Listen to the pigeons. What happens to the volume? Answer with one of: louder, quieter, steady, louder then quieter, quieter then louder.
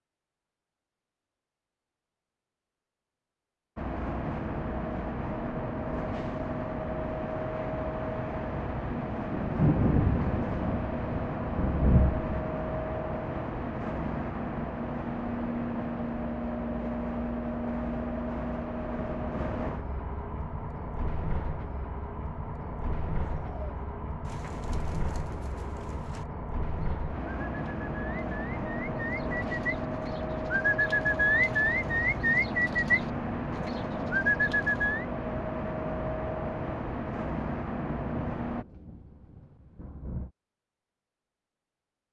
louder.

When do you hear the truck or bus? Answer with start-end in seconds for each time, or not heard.
3.8-38.6.